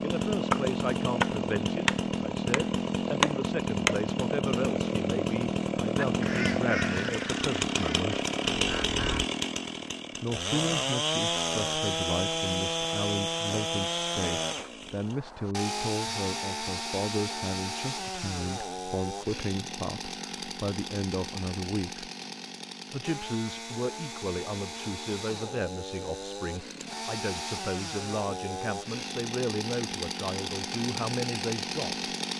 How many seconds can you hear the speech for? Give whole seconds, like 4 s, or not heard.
29 s.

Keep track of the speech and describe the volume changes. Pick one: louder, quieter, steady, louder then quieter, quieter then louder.
steady.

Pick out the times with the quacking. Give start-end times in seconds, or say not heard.
6.0-9.2.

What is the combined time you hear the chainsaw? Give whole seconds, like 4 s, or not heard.
32 s.